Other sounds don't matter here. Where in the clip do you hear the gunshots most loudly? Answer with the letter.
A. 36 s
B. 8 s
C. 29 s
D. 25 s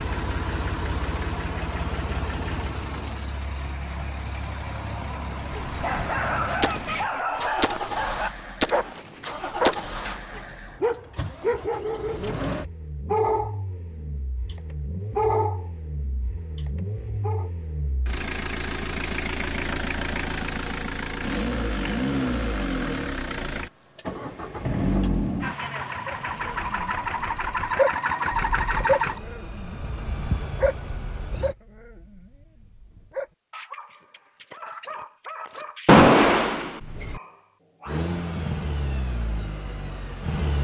A.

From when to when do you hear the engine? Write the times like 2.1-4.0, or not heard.
0.0-31.6, 37.9-40.5.